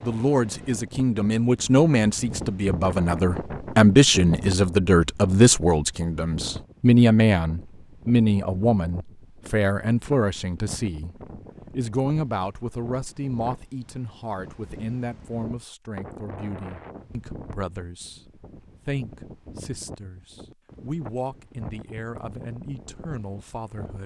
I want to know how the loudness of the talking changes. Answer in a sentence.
The loudness of the talking goes down.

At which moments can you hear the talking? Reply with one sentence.
The talking can be heard from 0.0 to 11.2 s and from 11.8 to 24.0 s.